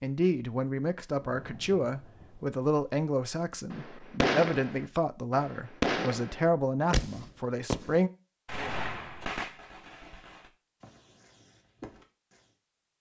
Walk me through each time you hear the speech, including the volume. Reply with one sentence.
You can hear the speech from 0.0 to 8.1 s, at a steady volume.